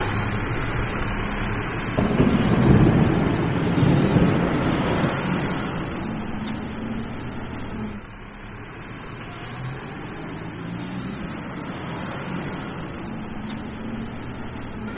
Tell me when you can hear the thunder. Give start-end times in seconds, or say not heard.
1.9-5.2.